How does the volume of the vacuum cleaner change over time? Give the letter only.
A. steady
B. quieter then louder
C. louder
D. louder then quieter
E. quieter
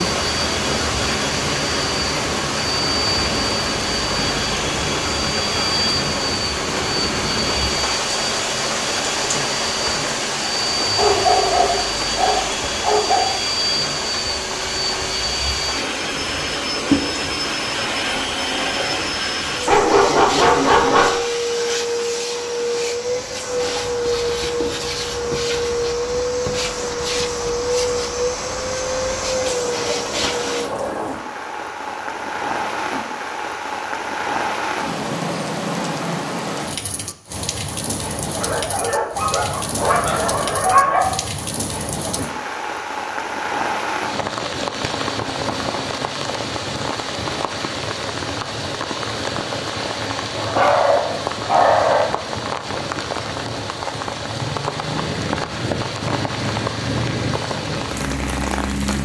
A.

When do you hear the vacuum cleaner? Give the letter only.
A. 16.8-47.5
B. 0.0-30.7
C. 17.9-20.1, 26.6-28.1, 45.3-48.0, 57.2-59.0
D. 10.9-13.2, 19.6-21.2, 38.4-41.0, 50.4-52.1
B.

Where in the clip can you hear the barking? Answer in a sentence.
You can hear the barking from 10.9 to 13.2 s, from 19.6 to 21.2 s, from 38.4 to 41.0 s and from 50.4 to 52.1 s.